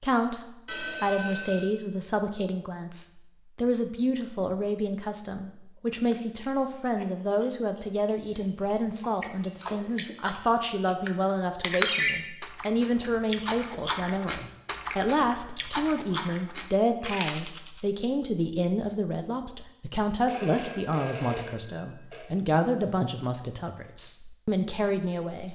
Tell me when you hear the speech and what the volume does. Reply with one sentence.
You can hear the speech from 0.0 to 25.5 s, at a steady volume.